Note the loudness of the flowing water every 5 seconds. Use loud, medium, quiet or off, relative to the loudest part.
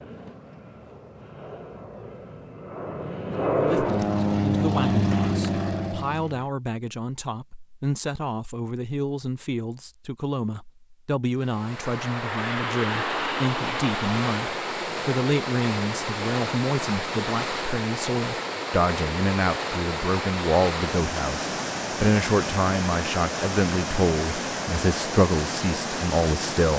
off, off, medium, loud, loud, loud.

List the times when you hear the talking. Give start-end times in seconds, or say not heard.
3.5-26.7.